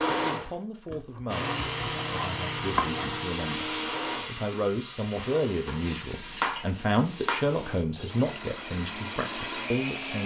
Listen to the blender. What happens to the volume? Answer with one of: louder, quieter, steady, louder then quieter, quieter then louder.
quieter then louder.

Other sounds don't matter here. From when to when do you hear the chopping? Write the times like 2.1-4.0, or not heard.
1.4-3.2, 5.7-8.2.